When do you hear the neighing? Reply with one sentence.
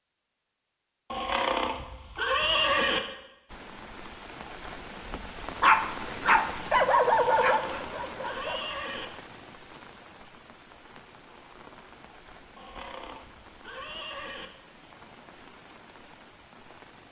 The neighing can be heard from 1.1 to 3.0 s, from 7.4 to 9.1 s and from 12.6 to 14.5 s.